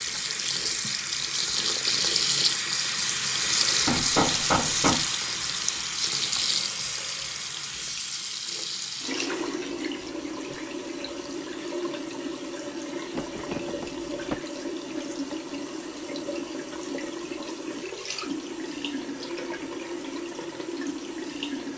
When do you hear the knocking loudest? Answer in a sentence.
The loudest moment of the knocking is at 4 seconds.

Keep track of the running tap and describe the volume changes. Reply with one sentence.
The loudness of the running tap goes down.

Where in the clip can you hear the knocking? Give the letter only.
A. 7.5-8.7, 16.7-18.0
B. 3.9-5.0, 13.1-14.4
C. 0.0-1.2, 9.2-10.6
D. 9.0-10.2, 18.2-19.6
B.